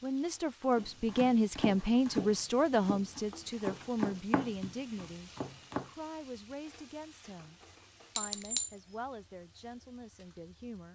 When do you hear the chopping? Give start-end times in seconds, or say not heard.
0.8-5.9.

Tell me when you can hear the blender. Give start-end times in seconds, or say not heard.
not heard.